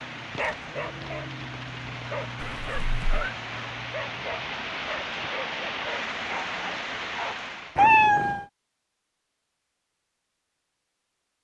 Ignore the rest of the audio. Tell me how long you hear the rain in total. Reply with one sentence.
You can hear the rain for 8 seconds altogether.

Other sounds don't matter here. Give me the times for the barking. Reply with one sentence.
The barking can be heard from 0.3 to 8.0 s.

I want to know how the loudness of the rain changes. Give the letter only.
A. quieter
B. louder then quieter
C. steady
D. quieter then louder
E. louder
E.